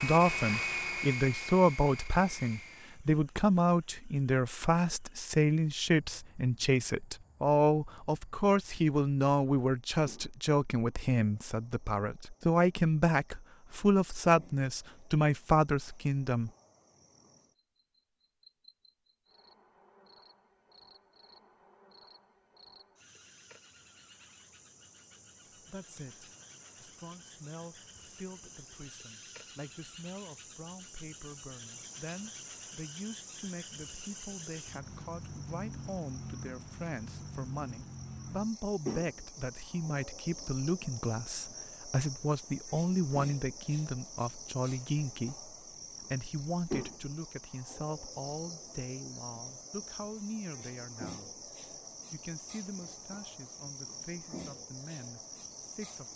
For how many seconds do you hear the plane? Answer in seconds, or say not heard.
3 s.